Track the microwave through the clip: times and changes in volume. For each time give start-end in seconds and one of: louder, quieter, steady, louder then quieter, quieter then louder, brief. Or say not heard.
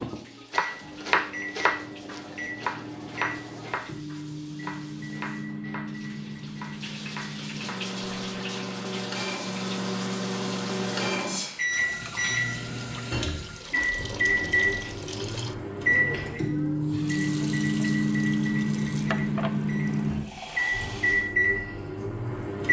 0.0-22.6 louder.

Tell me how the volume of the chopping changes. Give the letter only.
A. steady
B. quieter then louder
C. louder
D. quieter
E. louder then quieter
D.